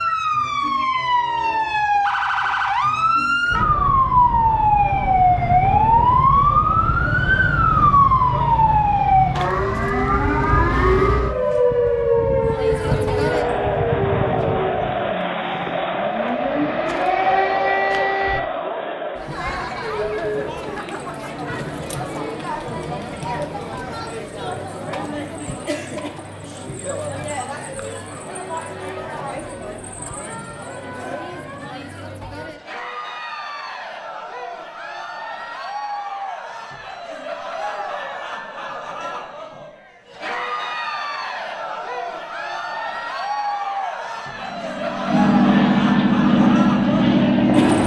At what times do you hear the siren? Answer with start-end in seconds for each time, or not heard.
0.0-18.4.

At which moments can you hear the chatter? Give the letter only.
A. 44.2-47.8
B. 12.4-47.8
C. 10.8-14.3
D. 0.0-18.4
B.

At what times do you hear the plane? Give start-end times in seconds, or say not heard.
44.2-47.8.